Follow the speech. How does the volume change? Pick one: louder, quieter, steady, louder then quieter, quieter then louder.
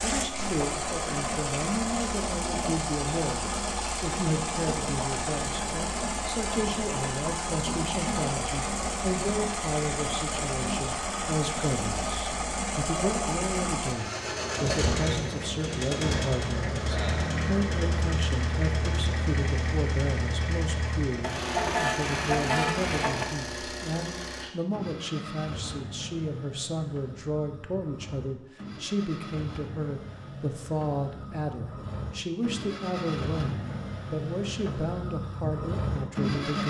steady.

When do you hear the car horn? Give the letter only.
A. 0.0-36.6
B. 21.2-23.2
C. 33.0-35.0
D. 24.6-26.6
B.